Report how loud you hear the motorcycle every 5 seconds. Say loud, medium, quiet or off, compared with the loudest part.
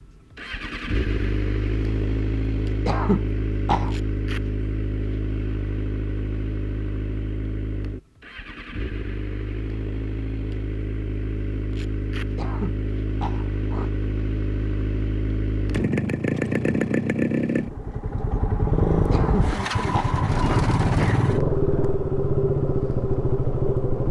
medium, medium, medium, loud, loud.